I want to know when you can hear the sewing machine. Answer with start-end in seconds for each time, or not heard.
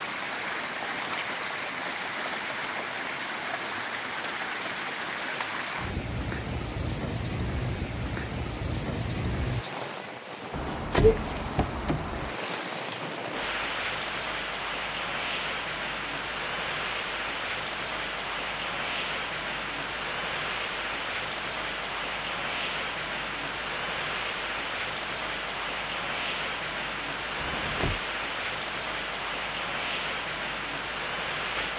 not heard.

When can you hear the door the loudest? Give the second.
11 s.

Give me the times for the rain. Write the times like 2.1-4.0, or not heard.
0.0-31.7.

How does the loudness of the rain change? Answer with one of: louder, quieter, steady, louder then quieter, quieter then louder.
steady.